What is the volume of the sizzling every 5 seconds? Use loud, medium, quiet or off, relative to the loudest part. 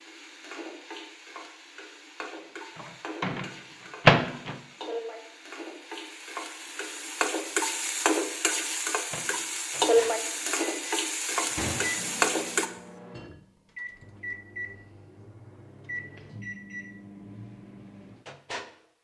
quiet, loud, loud, off.